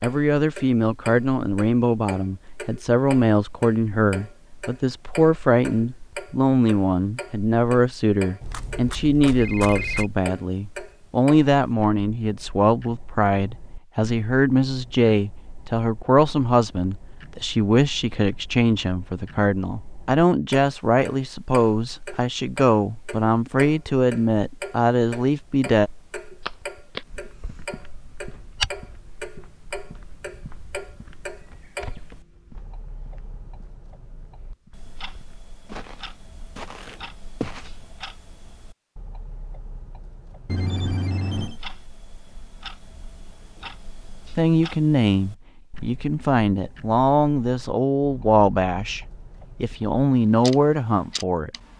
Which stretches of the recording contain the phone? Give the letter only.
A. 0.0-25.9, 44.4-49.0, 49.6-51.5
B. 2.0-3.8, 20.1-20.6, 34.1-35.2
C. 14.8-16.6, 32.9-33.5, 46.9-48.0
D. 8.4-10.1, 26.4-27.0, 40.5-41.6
D.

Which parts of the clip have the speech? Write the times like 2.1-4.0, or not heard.
0.0-25.9, 44.4-49.0, 49.6-51.5.